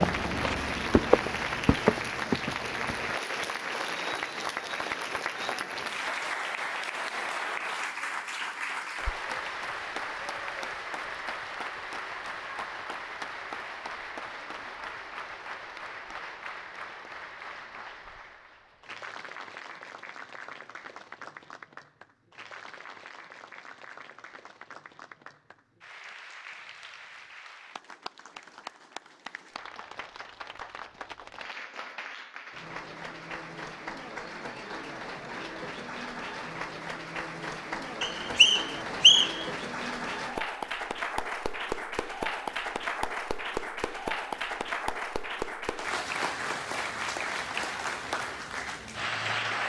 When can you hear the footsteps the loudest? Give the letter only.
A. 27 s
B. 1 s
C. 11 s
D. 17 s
B.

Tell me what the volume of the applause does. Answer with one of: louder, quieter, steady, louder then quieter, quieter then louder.
quieter then louder.